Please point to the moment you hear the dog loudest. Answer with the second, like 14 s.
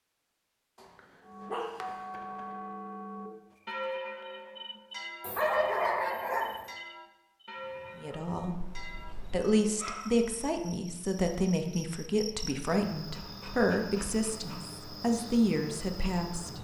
6 s.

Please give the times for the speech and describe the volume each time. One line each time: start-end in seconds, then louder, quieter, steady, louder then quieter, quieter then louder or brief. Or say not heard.
8.0-16.5 steady.